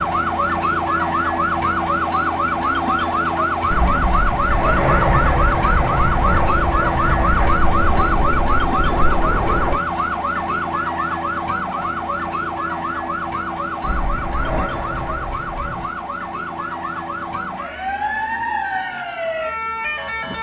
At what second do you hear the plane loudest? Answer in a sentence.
The loudest moment of the plane is at 5 seconds.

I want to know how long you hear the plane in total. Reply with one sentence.
You can hear the plane for 8 seconds altogether.